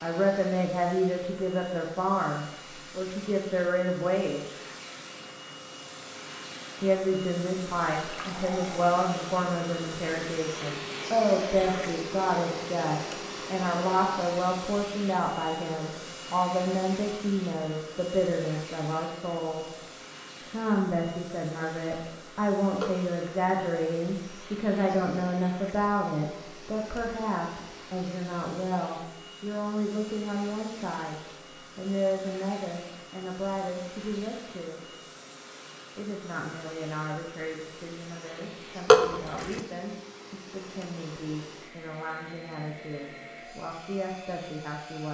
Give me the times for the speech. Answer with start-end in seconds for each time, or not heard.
0.0-4.5, 6.8-19.8, 20.4-34.9, 36.0-45.0.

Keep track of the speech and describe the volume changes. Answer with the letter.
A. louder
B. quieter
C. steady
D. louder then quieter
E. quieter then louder
B.